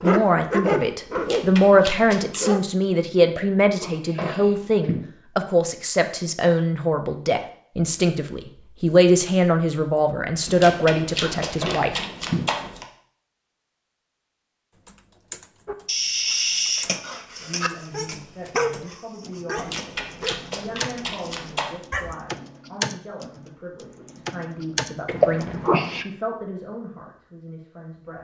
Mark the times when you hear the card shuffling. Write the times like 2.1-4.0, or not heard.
1.1-2.5, 10.4-12.8, 19.6-21.8.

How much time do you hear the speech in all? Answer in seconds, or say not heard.
23 s.